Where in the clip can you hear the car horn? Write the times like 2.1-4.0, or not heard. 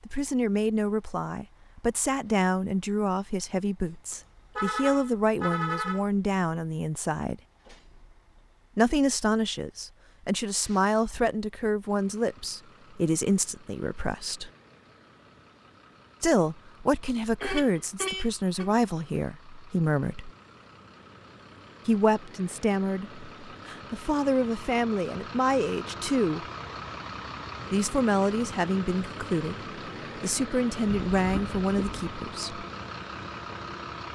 4.1-6.0, 17.4-18.8, 31.1-32.0.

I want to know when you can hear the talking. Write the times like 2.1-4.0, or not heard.
0.1-7.3, 8.8-14.5, 16.2-20.3, 21.9-26.4, 27.7-32.6.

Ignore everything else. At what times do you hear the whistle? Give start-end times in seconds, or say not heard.
not heard.